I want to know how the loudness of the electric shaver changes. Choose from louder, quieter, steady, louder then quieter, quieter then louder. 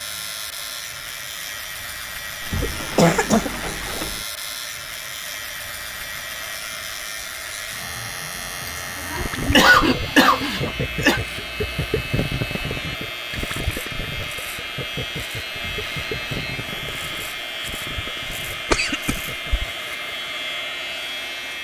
steady.